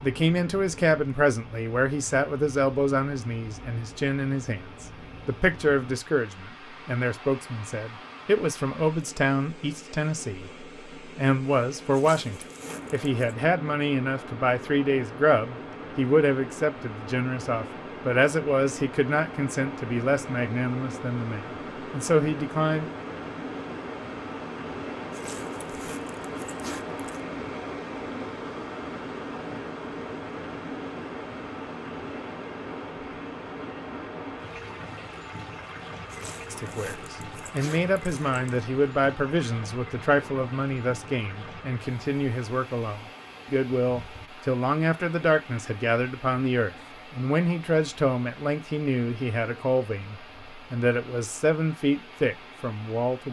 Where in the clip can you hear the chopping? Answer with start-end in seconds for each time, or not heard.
not heard.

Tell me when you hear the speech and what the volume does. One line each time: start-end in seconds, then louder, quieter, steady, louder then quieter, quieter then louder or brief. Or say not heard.
0.0-22.9 steady
36.5-53.2 steady.